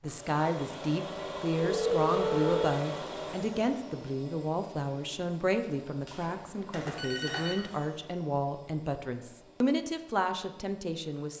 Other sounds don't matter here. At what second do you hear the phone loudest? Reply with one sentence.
The volume of the phone peaks at 2 seconds.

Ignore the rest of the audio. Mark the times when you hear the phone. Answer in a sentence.
You can hear the phone from 1.7 to 2.7 s and from 6.0 to 7.7 s.